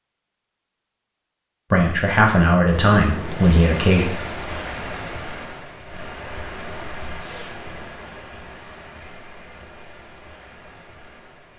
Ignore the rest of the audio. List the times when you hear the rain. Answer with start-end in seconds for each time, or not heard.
3.1-11.5.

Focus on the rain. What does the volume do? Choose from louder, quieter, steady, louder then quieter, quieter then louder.
quieter.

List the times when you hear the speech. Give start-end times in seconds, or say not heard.
1.7-4.0.